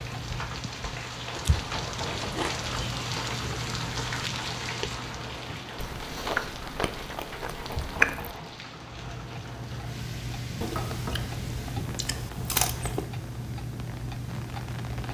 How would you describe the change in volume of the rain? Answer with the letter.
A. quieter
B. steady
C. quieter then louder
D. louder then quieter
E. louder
A.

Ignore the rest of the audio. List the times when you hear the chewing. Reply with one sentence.
You can hear the chewing from 1.4 to 3.0 s, from 5.8 to 8.3 s and from 10.6 to 13.1 s.